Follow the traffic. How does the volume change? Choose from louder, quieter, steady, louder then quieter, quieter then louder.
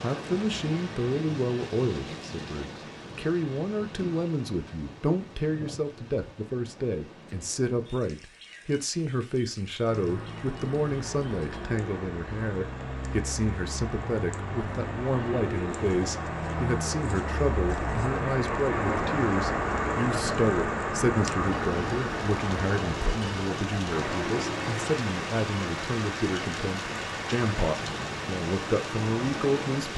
louder then quieter.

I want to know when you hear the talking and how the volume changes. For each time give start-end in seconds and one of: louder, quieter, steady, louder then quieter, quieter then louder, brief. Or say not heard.
0.0-29.9 steady.